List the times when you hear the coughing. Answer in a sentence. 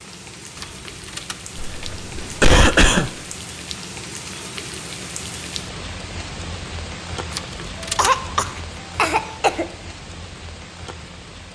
You can hear the coughing from 1.6 to 3.1 s and from 8.0 to 9.7 s.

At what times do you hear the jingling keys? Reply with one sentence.
The jingling keys can be heard from 0.6 to 2.1 s and from 7.3 to 8.6 s.